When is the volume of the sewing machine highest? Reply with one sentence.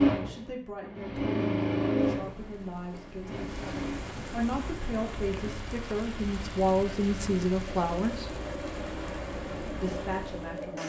The loudest moment of the sewing machine is at 2 seconds.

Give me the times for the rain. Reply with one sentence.
You can hear the rain from 2.1 to 10.8 s.